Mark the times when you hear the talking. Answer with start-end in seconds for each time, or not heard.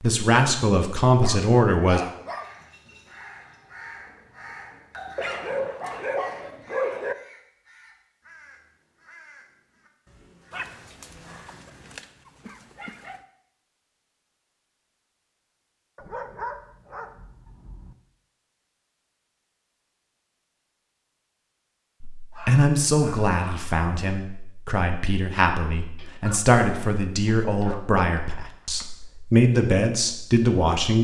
0.0-2.0, 22.0-30.9.